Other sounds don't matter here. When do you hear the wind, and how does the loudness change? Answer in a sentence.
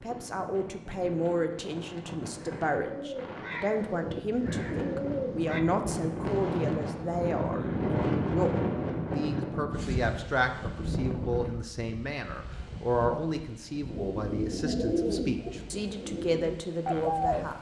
The wind can be heard from 0.0 to 17.5 s, getting louder then quieter.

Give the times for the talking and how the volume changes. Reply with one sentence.
You can hear the talking from 0.0 to 17.5 s, at a steady volume.